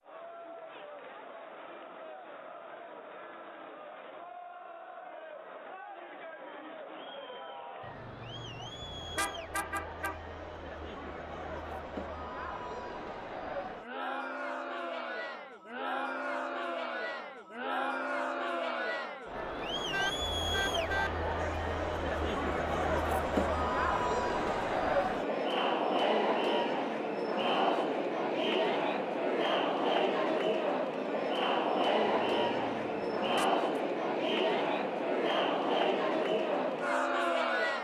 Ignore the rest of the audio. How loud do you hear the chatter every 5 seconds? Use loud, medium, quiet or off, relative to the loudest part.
quiet, quiet, medium, medium, loud, loud, loud, loud.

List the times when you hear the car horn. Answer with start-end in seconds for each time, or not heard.
7.8-10.2, 19.9-21.1, 32.0-33.6.